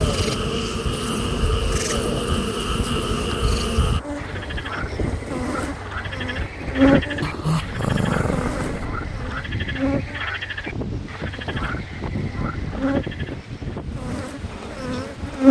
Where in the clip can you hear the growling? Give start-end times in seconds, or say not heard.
7.2-8.8.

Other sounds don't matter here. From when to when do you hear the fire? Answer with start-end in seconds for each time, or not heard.
not heard.